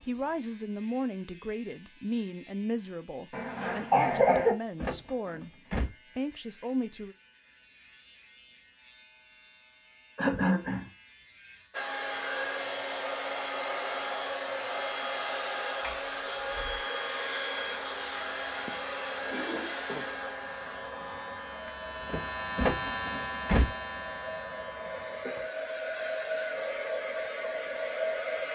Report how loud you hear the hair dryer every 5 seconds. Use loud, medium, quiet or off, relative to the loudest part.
off, off, loud, loud, medium, loud.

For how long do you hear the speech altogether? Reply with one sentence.
The speech can be heard for 7 seconds in total.